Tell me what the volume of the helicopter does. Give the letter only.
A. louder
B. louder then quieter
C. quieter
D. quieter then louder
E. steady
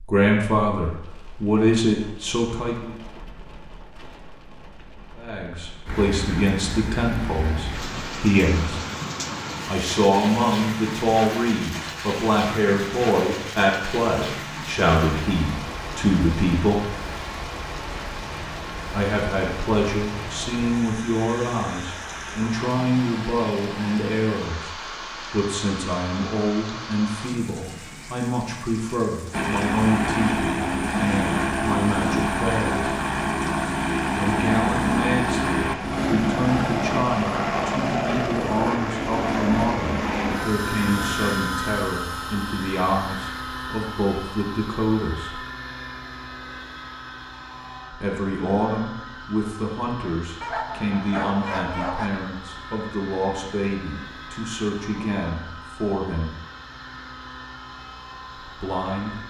C.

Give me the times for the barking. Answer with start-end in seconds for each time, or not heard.
50.4-52.1.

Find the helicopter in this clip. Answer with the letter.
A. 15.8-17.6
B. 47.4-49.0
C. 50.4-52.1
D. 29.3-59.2
D.